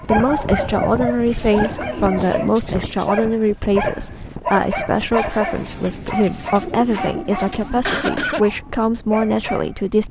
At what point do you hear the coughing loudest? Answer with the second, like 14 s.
8 s.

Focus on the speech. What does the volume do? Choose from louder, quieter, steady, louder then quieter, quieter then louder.
steady.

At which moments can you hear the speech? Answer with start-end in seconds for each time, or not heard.
0.0-10.0.